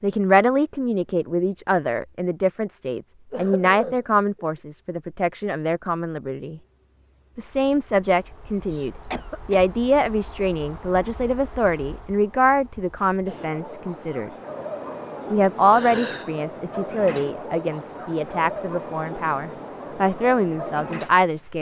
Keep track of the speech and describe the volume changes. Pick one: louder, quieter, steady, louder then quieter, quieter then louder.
steady.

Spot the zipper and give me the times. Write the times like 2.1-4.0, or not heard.
not heard.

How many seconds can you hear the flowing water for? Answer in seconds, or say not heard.
not heard.